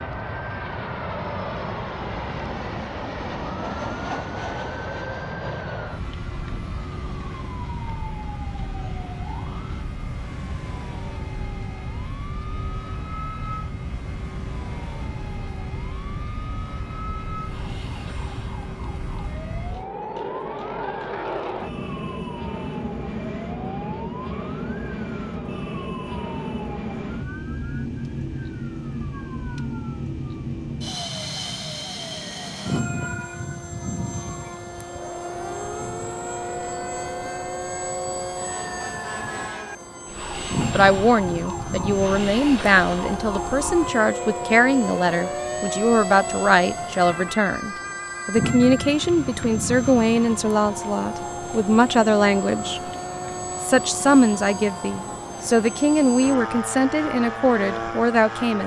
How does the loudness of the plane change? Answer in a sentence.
The volume of the plane stays about the same.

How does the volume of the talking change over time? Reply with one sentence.
The volume of the talking stays about the same.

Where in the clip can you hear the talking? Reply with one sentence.
You can hear the talking from 40.7 to 52.9 s and from 53.6 to 58.6 s.